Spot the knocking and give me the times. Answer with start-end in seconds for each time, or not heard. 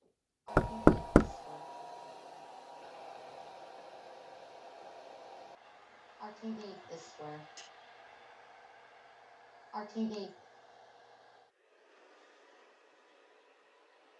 0.6-1.3.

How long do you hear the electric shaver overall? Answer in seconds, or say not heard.
not heard.